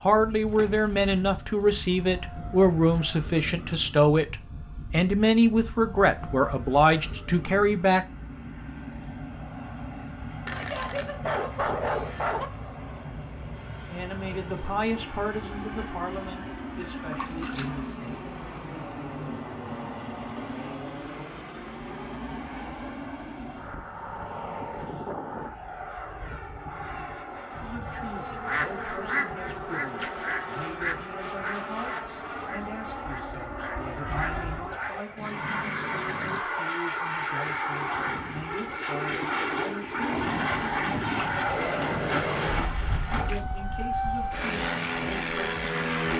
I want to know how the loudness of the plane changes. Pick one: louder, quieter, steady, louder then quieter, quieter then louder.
louder.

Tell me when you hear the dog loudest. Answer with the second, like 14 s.
12 s.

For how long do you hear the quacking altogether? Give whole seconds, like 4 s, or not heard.
8 s.